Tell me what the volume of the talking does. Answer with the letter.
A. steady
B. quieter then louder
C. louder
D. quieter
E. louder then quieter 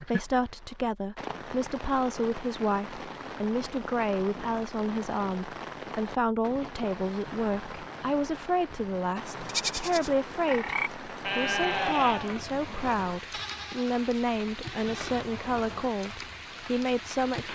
A.